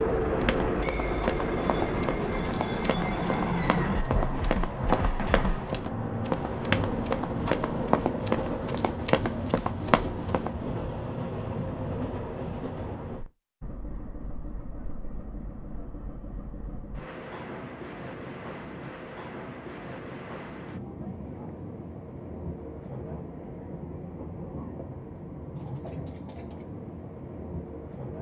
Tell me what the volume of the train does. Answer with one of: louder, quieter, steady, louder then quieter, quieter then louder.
quieter.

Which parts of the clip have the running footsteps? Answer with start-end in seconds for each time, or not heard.
0.1-10.5.